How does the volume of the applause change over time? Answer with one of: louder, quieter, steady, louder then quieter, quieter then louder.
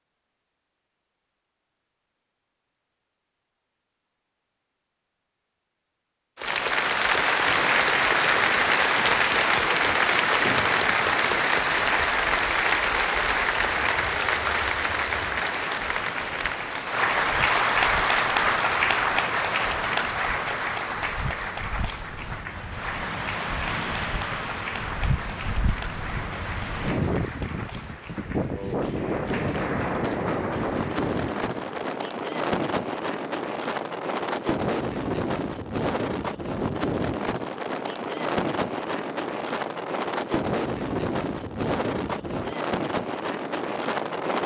quieter.